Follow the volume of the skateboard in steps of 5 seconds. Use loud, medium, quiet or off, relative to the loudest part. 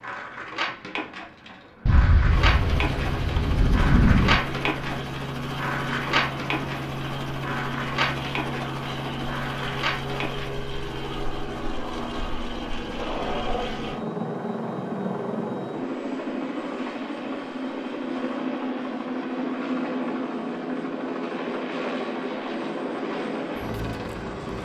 loud, loud, medium, off, off.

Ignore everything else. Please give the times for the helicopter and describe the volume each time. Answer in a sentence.
The helicopter can be heard from 2.2 to 24.6 s, at a steady volume.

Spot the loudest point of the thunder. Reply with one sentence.
The loudest moment of the thunder is at 4 seconds.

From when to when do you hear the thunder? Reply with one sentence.
You can hear the thunder from 1.9 to 4.4 s.